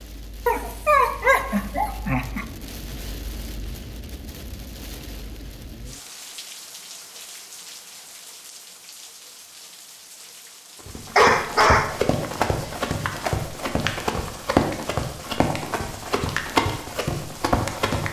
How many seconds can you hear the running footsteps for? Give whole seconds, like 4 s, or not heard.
7 s.